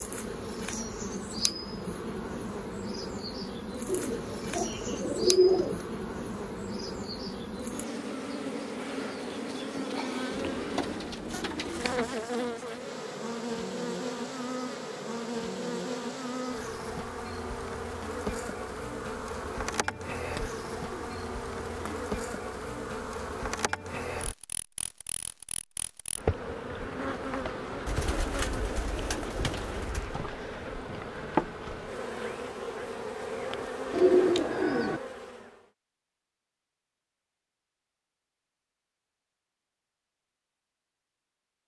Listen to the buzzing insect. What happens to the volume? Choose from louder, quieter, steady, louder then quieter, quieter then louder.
steady.